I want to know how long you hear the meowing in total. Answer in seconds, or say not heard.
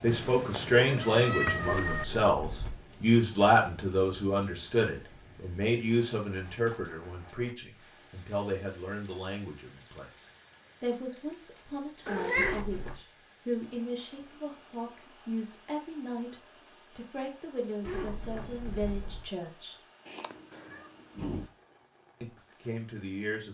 4 s.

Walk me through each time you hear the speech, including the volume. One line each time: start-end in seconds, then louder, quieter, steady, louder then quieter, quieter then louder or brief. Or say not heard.
0.0-16.4 quieter
16.9-19.8 brief
22.2-23.4 brief.